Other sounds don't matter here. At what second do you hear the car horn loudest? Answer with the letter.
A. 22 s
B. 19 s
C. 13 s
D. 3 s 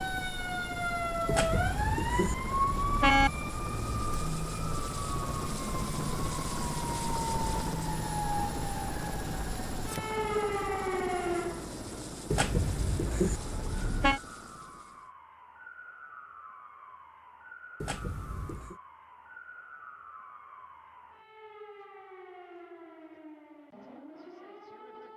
D.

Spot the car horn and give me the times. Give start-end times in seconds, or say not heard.
1.2-3.3, 12.3-14.2, 17.8-18.8.